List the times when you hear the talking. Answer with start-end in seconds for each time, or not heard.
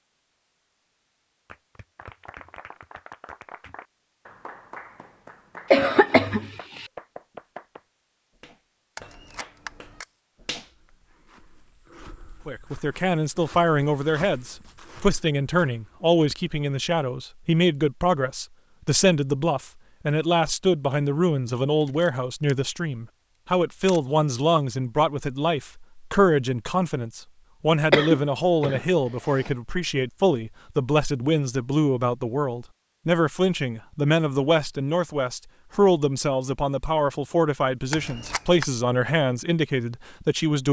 12.4-40.6.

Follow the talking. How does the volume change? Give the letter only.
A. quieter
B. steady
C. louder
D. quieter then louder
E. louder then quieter
B.